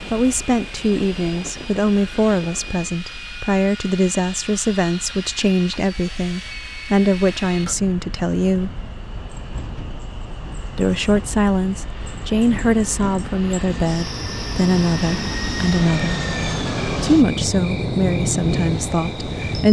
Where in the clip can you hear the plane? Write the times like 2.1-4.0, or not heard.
0.0-19.6.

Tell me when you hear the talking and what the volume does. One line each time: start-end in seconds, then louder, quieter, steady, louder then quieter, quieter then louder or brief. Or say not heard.
0.1-8.7 steady
10.8-16.2 steady
17.0-19.6 brief.